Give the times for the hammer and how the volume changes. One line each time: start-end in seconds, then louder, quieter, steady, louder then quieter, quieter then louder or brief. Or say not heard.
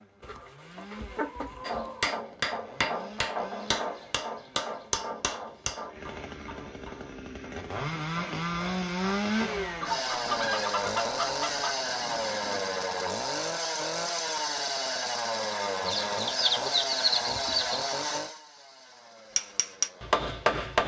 1.6-12.6 quieter
19.4-20.8 brief.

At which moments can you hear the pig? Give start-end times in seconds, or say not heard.
not heard.